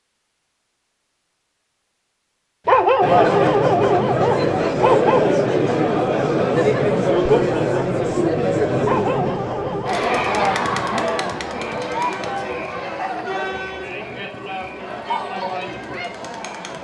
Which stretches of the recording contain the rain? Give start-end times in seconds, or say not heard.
not heard.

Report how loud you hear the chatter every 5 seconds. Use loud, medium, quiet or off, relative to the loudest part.
loud, loud, medium, medium.